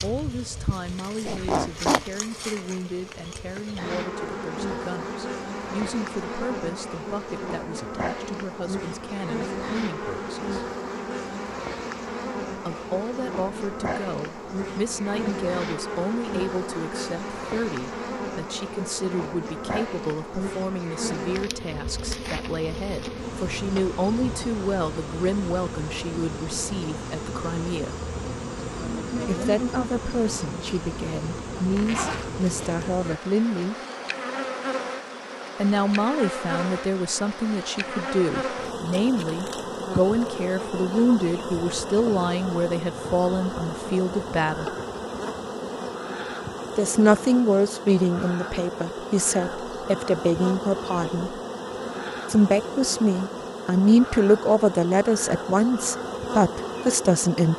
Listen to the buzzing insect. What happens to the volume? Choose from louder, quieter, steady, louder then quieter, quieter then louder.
steady.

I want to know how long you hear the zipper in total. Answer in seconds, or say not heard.
2 s.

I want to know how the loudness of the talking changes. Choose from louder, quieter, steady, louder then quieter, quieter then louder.
louder.